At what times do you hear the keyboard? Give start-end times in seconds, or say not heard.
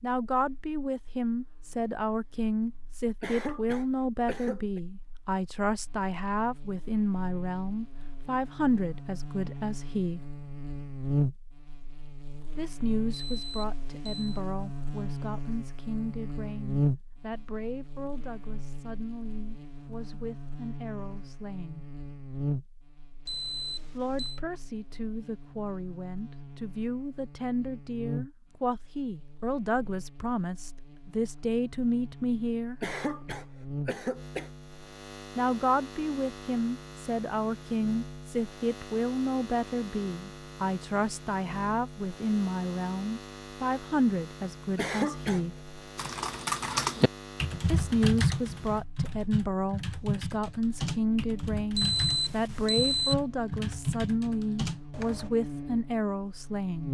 46.0-55.3.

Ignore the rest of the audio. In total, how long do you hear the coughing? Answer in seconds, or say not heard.
4 s.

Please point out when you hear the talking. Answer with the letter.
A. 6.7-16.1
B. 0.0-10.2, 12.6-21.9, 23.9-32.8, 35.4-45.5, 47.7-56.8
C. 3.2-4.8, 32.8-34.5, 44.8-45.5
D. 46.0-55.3
B.